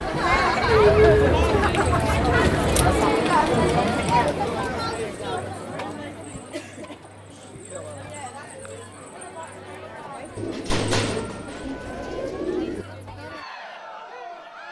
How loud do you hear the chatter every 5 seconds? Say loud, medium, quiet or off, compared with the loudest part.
loud, quiet, quiet.